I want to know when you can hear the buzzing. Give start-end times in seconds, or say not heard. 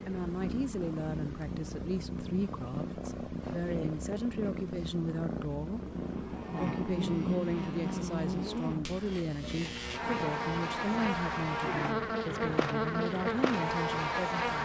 5.7-14.6.